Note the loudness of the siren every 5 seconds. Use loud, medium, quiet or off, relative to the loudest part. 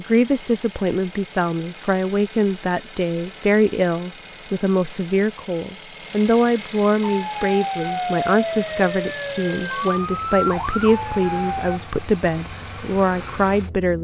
off, loud, loud.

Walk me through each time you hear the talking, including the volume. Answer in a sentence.
The talking can be heard from 0.0 to 13.9 s, at a steady volume.